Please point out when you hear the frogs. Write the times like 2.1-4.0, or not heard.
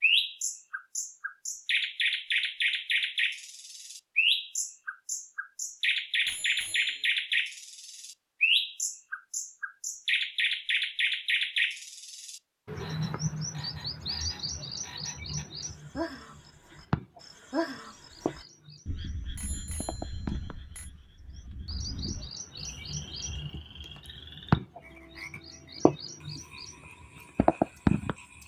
12.7-28.4.